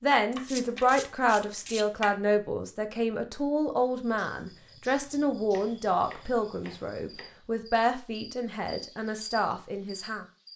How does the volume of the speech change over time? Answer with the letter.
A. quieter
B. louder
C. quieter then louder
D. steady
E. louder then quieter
A.